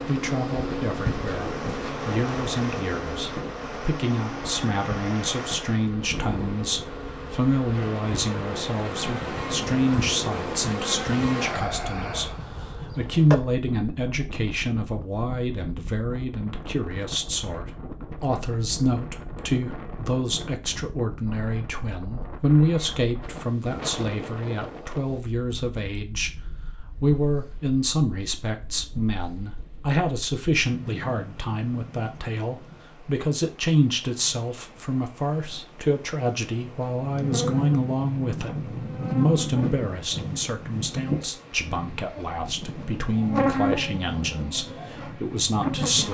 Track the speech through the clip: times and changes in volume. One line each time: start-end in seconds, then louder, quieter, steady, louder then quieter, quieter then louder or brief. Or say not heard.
0.1-46.0 steady.